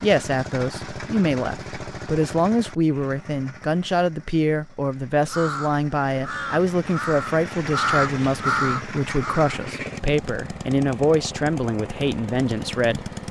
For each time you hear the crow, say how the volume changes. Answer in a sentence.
The crow can be heard from 5.2 to 9.6 s, getting louder.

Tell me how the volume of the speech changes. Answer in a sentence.
The volume of the speech stays about the same.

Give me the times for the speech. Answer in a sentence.
The speech can be heard from 0.0 to 13.1 s.